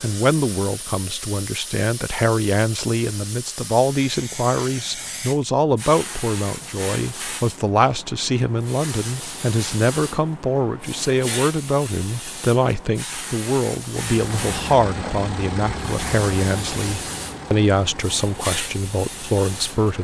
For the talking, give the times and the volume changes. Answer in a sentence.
You can hear the talking from 0.0 to 19.9 s, at a steady volume.